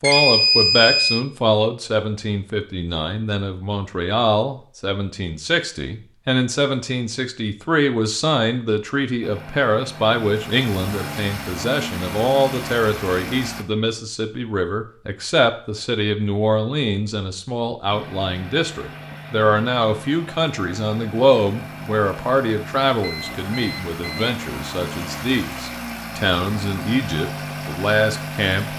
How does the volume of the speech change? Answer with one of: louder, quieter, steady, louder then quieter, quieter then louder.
steady.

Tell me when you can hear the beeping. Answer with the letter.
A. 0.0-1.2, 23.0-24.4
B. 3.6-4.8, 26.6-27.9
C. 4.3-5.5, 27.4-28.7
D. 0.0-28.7
A.